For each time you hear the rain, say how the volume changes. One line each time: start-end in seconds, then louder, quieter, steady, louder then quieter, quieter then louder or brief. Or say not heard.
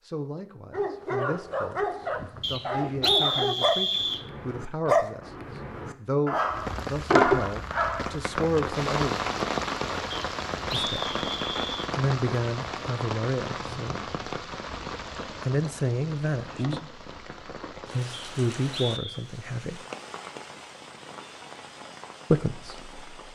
6.5-23.3 quieter.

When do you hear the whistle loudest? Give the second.
3 s.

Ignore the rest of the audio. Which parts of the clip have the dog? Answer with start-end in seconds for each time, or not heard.
0.7-8.2.